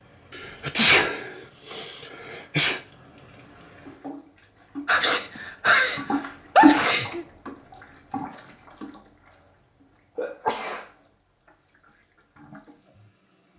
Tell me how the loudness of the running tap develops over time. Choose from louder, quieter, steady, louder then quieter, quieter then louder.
louder then quieter.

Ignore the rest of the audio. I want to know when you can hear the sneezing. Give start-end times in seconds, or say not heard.
0.3-2.8, 4.8-7.2, 10.2-10.8.